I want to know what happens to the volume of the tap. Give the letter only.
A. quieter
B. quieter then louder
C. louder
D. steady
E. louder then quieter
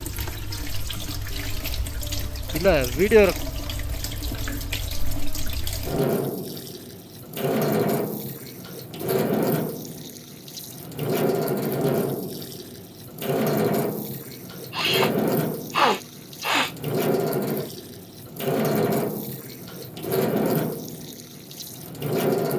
C.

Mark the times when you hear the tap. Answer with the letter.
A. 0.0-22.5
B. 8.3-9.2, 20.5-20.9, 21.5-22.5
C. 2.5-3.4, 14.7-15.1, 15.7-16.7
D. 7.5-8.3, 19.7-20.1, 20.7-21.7
A.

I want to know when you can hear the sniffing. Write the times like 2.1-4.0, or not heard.
2.5-3.4, 14.7-15.1, 15.7-16.7.